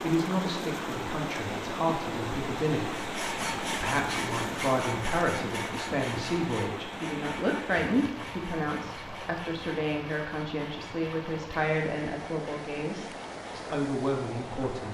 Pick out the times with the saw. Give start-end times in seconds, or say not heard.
2.9-13.7.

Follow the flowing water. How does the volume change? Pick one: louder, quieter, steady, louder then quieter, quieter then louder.
quieter.